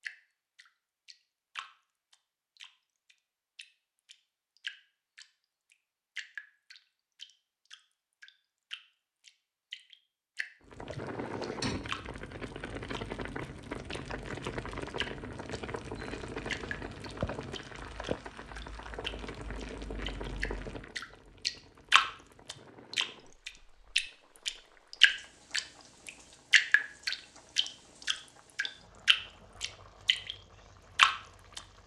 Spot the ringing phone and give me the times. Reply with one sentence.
The ringing phone can't be heard in this clip.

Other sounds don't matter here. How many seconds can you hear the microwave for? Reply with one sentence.
You can't hear the microwave here.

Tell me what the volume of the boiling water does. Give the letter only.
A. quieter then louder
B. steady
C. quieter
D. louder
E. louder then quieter
C.